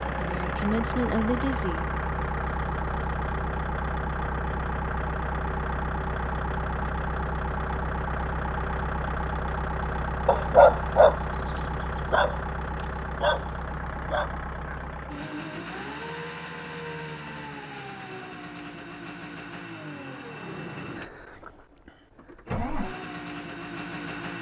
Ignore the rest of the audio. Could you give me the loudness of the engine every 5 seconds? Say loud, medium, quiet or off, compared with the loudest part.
loud, loud, loud, medium, medium.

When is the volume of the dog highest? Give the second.
11 s.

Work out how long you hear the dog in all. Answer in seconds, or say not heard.
4 s.